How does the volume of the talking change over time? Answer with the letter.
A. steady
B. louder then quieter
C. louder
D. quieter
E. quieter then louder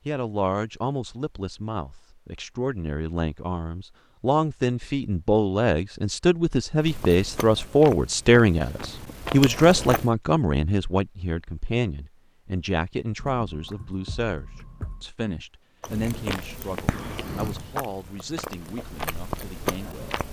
B.